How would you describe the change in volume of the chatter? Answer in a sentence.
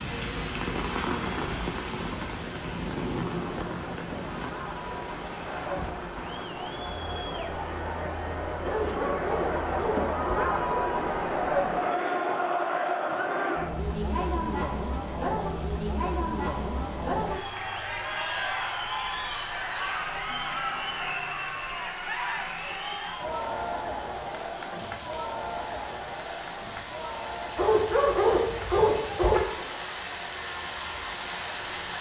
The loudness of the chatter goes up, then down.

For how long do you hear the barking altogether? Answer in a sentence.
You can hear the barking for 4 seconds altogether.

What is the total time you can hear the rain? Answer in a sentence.
You can hear the rain for 32 seconds altogether.